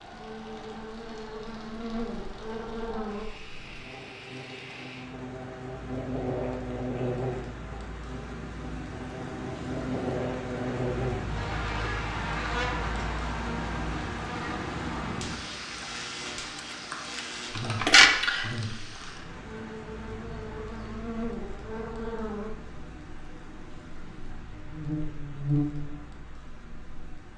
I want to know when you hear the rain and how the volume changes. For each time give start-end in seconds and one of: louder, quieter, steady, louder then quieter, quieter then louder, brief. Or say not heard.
0.0-27.3 louder then quieter.